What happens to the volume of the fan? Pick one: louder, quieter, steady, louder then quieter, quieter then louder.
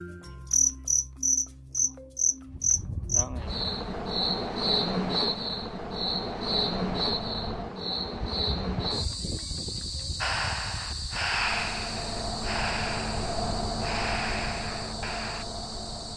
louder.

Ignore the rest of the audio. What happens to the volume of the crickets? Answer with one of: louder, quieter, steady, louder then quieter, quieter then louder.
quieter.